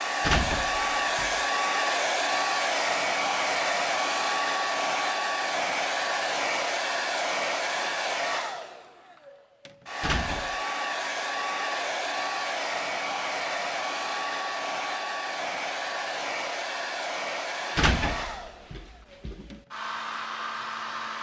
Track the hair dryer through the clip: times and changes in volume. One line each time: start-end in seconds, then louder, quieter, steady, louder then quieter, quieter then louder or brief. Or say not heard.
0.0-21.1 quieter.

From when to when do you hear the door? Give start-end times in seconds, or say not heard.
0.2-1.4, 10.0-10.6, 17.8-19.6.